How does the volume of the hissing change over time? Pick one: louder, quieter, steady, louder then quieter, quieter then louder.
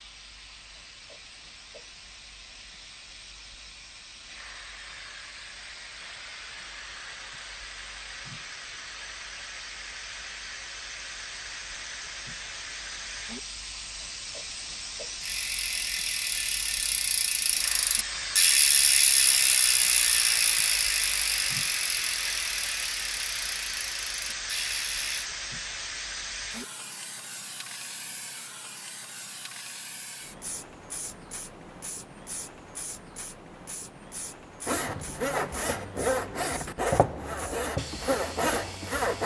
louder then quieter.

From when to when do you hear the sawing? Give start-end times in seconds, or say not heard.
34.6-39.2.